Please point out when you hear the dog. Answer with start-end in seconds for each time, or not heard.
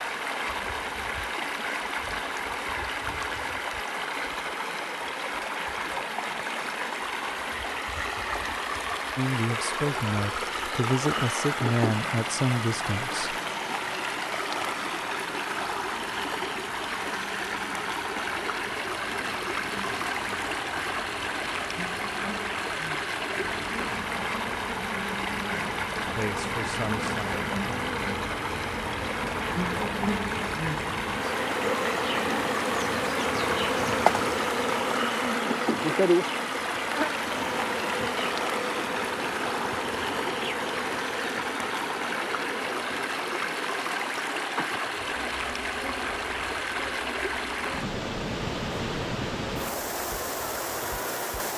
not heard.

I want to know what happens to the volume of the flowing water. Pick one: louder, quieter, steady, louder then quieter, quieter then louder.
steady.